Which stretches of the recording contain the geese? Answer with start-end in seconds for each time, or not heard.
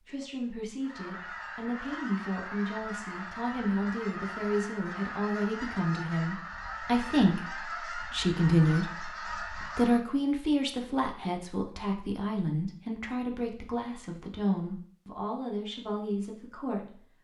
0.8-10.1.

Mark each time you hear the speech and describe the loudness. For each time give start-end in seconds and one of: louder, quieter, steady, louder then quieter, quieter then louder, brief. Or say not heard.
0.1-17.1 louder then quieter.